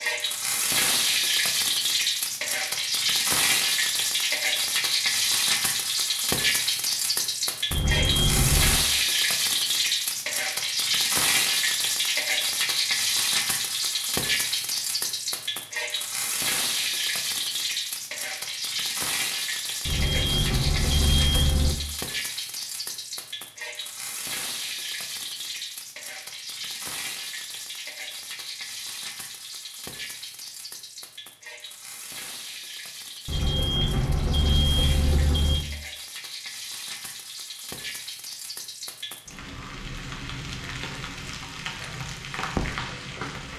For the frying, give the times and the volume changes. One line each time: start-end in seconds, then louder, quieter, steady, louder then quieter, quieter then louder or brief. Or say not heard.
0.0-43.5 quieter.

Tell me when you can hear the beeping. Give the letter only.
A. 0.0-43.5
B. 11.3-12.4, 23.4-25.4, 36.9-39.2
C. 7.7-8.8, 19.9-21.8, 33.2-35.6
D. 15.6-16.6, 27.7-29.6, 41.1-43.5
C.